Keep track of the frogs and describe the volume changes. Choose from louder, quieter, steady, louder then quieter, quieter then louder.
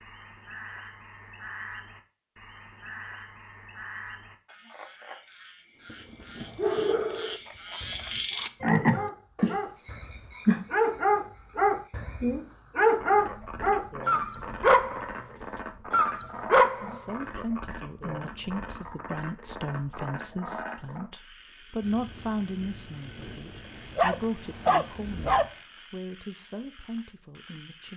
louder then quieter.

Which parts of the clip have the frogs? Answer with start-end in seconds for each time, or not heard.
0.0-27.9.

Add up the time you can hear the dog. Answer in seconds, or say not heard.
12 s.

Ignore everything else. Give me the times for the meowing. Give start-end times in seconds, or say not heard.
not heard.